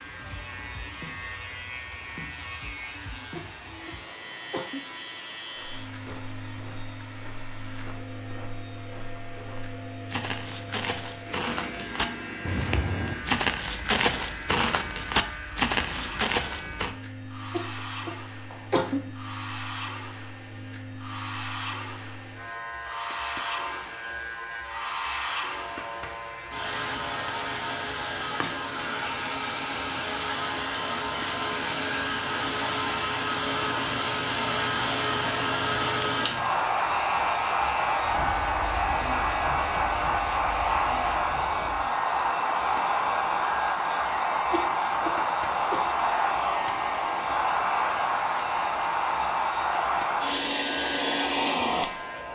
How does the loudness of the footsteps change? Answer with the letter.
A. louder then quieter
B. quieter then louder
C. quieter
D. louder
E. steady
D.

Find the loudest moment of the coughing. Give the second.
19 s.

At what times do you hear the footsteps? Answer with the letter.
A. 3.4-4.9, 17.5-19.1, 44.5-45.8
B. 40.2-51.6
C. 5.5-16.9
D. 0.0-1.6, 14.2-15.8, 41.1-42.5
C.